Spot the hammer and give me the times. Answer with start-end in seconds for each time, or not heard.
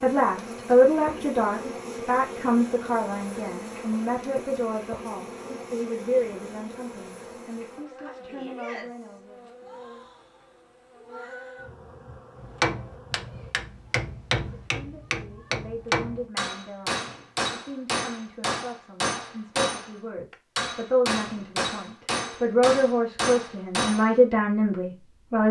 12.4-24.1.